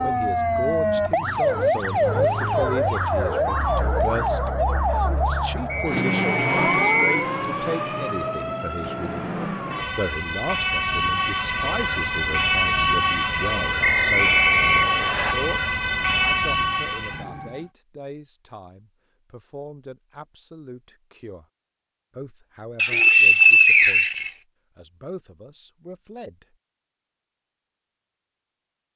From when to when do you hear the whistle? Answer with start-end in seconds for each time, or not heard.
5.7-7.2, 13.8-15.3, 22.8-24.3.